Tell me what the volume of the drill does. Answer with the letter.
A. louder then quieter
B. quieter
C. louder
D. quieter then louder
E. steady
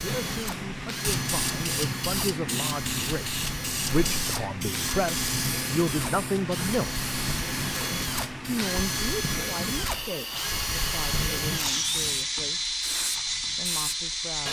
C.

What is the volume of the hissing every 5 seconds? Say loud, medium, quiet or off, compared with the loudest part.
loud, loud, medium.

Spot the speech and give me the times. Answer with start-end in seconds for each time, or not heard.
0.0-7.0, 8.4-12.7, 13.6-14.4.